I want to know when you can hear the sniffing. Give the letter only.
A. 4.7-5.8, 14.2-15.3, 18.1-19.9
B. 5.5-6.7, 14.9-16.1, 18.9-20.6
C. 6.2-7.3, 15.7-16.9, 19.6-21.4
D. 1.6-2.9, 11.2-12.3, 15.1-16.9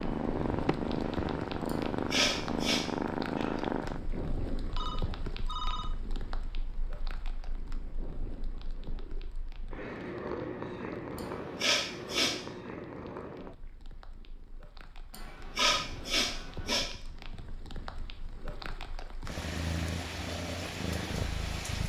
D.